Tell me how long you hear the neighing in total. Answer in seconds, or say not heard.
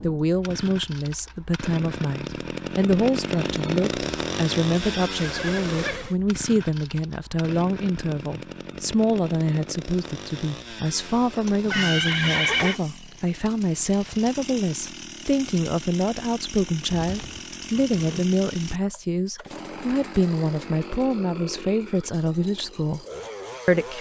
4 s.